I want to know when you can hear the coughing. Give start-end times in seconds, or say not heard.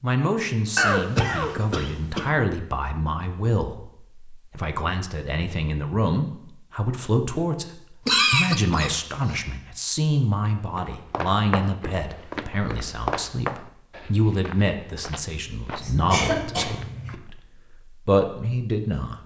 0.8-2.2, 8.1-8.9, 15.8-17.1.